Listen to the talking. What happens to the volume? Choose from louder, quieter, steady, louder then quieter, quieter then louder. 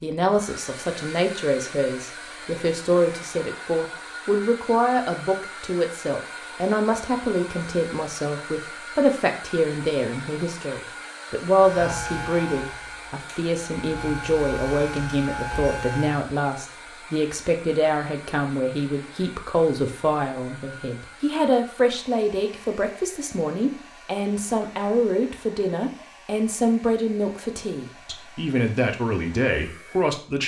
steady.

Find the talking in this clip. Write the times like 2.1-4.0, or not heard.
0.0-30.4.